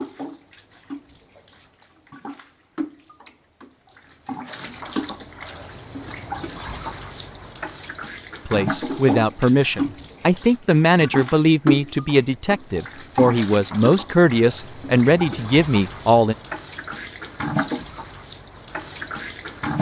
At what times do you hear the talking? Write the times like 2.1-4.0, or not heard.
8.4-16.4.